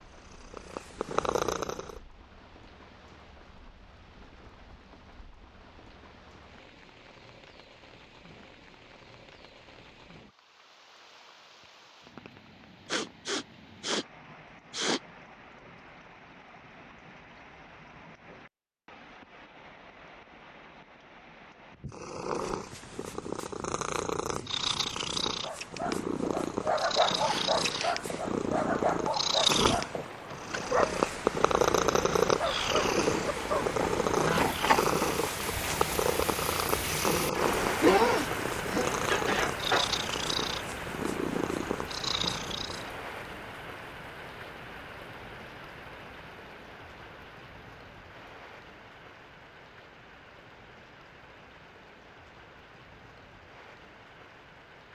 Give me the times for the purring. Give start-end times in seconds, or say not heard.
0.0-2.0, 21.9-42.9.